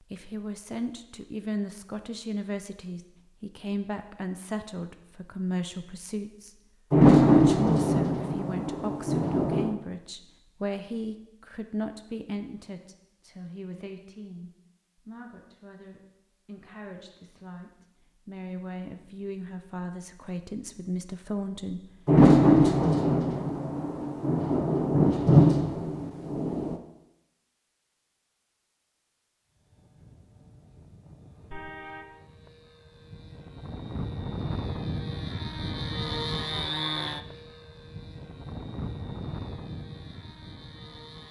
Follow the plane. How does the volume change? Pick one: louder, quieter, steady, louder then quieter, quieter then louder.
louder then quieter.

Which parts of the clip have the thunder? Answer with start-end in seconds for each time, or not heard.
6.9-9.8, 22.1-26.8.